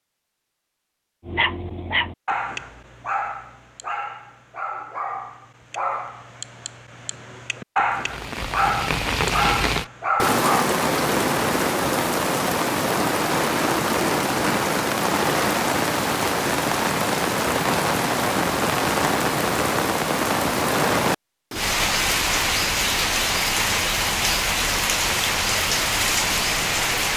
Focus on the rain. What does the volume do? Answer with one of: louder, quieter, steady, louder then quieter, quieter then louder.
steady.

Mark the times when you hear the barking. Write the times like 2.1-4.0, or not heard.
1.2-10.7.